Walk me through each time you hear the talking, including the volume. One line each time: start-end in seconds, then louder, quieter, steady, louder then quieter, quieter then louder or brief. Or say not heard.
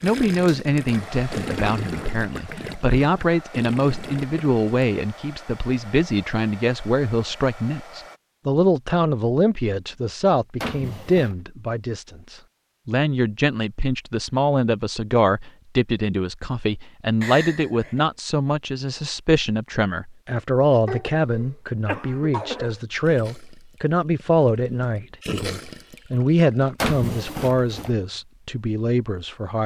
0.0-29.6 steady.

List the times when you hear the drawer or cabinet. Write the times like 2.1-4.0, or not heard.
10.6-11.3, 26.8-27.9.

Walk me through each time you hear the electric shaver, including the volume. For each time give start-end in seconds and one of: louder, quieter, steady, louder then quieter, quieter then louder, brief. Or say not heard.
not heard.